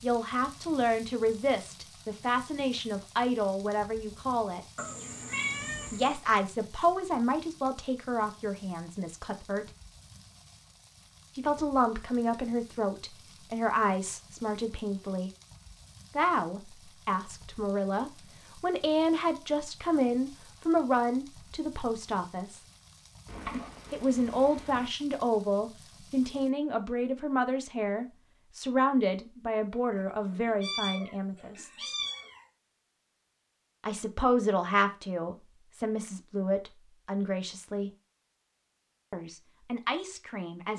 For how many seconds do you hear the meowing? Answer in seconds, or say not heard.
6 s.